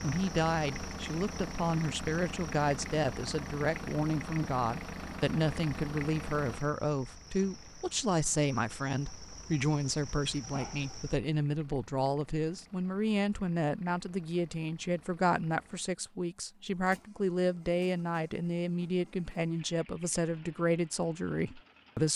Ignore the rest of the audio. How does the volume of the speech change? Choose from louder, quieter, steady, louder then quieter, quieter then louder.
steady.